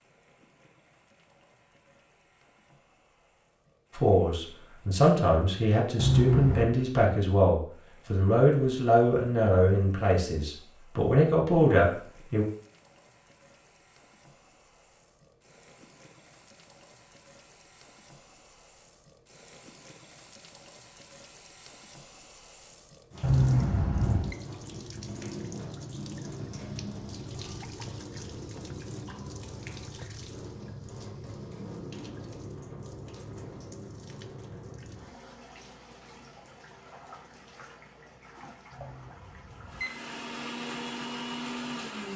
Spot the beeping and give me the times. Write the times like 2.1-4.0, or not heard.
6.0-6.8, 23.2-24.4, 38.7-39.9.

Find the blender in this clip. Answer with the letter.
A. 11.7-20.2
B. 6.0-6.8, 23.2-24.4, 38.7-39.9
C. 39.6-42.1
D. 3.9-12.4
C.